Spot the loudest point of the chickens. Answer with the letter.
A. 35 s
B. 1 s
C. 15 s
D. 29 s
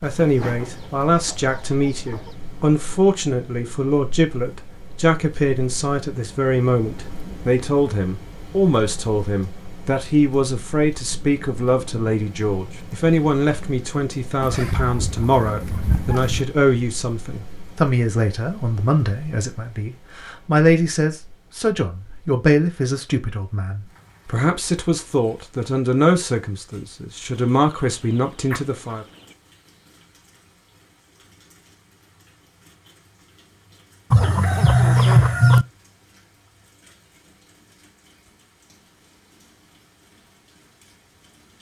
A.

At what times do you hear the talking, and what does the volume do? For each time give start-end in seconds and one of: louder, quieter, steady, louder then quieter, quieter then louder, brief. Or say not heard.
0.0-29.1 steady.